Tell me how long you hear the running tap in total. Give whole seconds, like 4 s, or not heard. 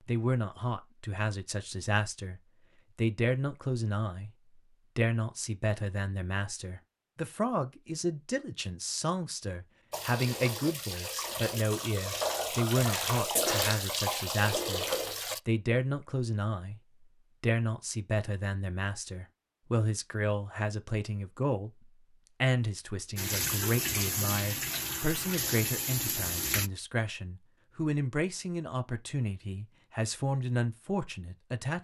9 s.